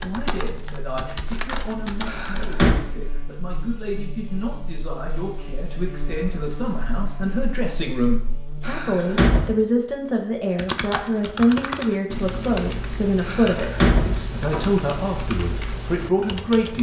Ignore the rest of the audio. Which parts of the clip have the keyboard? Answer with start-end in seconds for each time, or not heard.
0.0-2.5, 10.6-16.7.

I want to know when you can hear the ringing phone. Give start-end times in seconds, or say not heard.
not heard.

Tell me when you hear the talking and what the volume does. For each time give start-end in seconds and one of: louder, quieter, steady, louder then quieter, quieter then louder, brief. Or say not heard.
0.0-16.7 louder.